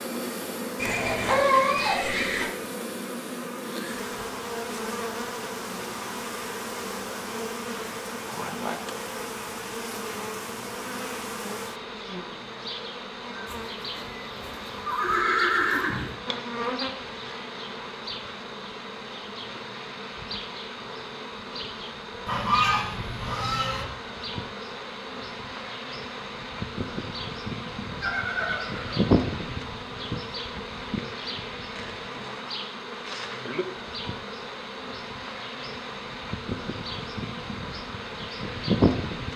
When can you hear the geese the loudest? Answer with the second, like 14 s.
23 s.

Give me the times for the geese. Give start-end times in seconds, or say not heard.
22.2-23.9.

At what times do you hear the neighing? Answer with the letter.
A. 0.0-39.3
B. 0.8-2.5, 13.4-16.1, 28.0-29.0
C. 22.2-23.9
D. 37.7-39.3
B.